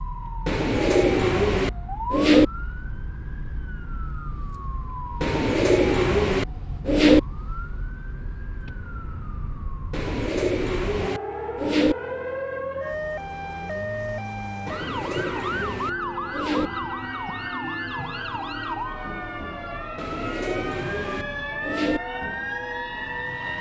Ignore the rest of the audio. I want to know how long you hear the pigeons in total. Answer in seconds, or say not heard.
10 s.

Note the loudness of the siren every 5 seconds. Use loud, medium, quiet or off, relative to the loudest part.
medium, medium, loud, loud, loud.